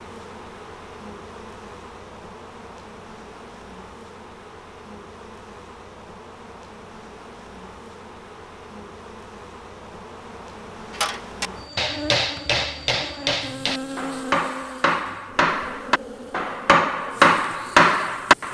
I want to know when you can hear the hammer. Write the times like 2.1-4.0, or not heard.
10.9-18.5.